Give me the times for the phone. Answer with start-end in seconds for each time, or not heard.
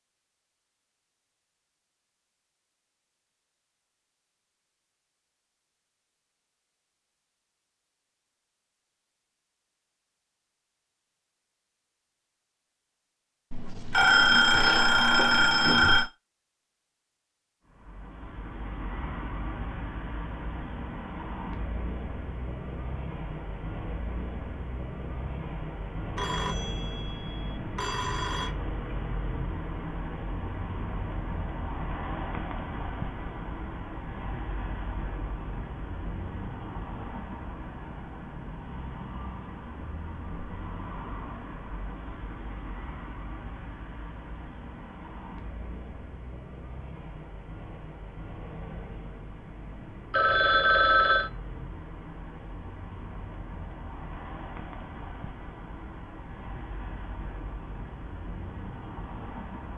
13.5-16.1, 26.1-28.5, 50.1-51.3.